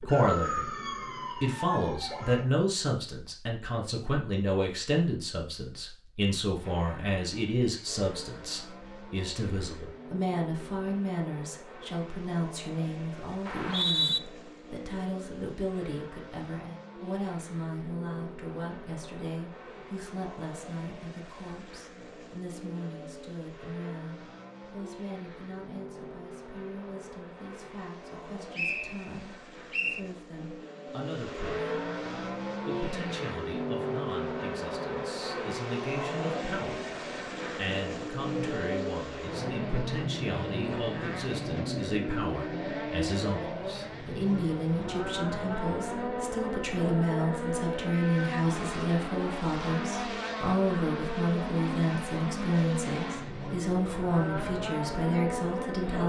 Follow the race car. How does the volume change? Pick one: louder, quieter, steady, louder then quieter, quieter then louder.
louder.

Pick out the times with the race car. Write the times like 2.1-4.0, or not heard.
6.6-56.0.